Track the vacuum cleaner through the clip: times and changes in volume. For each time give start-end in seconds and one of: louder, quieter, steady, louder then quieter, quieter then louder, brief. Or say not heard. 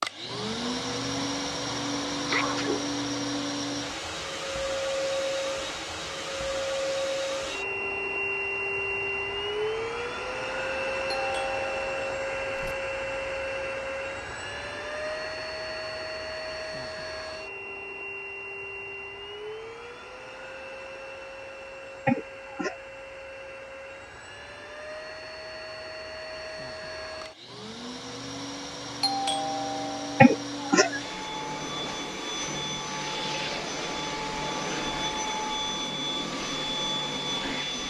0.0-37.8 quieter then louder.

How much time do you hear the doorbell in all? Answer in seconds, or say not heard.
3 s.